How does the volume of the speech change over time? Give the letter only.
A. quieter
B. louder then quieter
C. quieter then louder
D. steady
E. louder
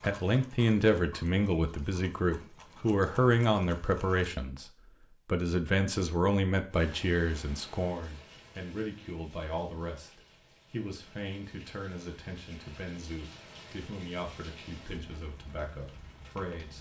A.